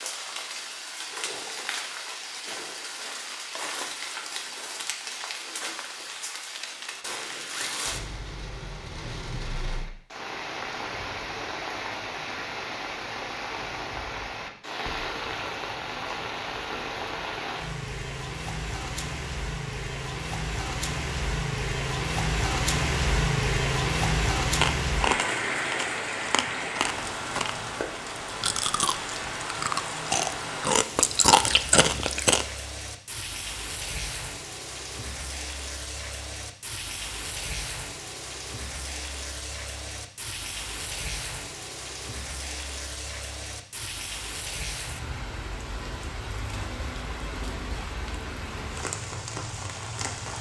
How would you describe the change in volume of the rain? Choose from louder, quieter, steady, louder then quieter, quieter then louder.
louder then quieter.